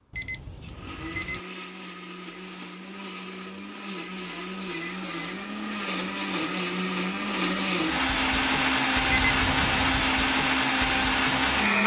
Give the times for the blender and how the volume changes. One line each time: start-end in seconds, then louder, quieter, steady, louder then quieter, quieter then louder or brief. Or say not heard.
0.0-11.8 louder.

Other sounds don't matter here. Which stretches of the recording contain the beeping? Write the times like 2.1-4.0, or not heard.
0.1-1.4, 9.1-10.2.